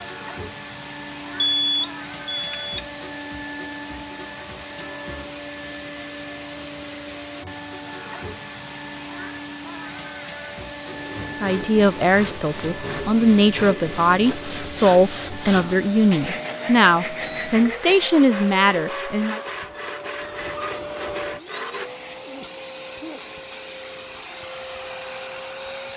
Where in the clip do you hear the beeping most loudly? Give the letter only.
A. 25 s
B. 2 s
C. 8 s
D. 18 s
B.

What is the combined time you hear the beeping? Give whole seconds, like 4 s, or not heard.
2 s.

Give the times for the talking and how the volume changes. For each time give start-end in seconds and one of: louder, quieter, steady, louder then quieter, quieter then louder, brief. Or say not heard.
11.3-19.4 steady.